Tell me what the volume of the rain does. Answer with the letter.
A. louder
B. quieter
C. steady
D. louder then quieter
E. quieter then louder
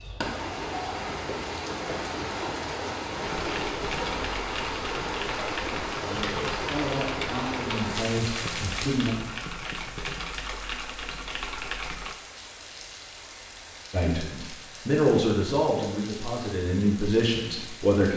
B.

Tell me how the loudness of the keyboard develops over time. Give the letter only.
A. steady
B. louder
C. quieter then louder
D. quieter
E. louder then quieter
A.